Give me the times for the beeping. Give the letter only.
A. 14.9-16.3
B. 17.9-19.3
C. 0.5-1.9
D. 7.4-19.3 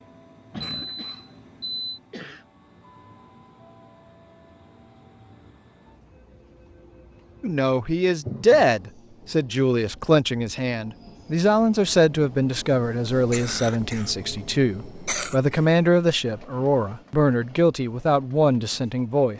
C.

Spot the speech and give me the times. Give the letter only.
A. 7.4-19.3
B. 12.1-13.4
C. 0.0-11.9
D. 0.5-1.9
A.